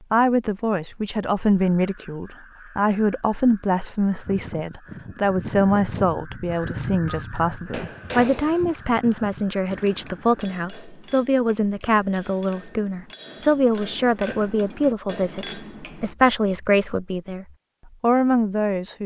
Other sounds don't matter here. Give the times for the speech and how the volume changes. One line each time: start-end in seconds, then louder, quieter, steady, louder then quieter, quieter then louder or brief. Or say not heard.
0.1-19.0 steady.